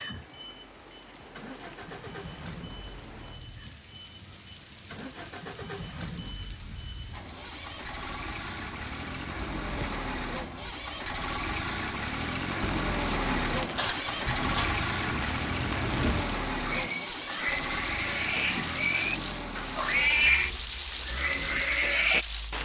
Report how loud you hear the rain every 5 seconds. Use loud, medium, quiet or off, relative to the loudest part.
quiet, quiet, medium, loud, loud.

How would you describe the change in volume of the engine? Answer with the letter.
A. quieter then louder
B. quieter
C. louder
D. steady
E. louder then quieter
E.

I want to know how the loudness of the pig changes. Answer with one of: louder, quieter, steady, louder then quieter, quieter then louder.
louder.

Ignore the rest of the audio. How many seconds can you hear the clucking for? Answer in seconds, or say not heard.
not heard.